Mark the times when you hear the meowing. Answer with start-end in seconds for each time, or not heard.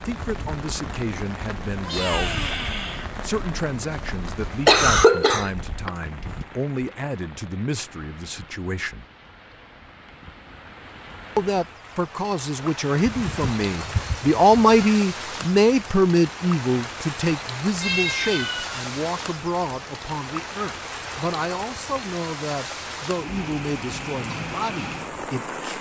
1.8-3.1, 13.1-15.0, 17.8-18.9.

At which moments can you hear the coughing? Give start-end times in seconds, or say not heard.
4.7-5.9.